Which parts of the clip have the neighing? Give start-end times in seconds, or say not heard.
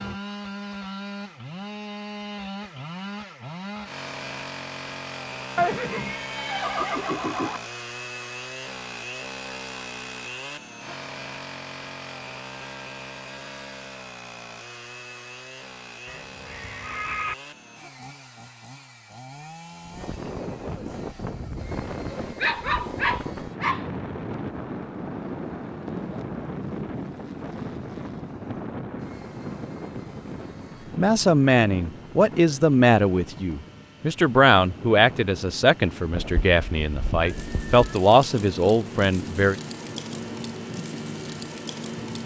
5.5-7.6, 16.1-17.4, 36.1-38.0.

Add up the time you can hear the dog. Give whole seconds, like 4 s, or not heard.
2 s.